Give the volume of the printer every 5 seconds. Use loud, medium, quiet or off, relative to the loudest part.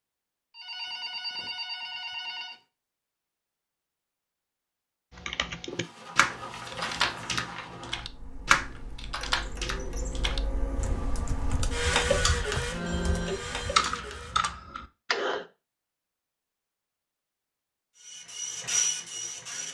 off, medium, loud, loud.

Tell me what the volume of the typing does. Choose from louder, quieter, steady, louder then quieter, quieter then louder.
quieter then louder.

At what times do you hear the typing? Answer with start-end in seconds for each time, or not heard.
5.2-15.4.